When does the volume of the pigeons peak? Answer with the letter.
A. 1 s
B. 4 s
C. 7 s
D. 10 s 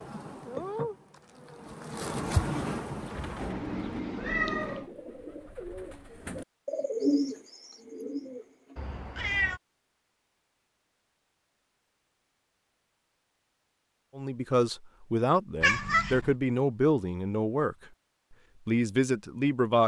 C.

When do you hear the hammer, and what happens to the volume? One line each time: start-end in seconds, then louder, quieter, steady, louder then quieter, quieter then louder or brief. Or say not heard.
not heard.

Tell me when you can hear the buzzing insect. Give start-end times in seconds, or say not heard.
0.0-3.5.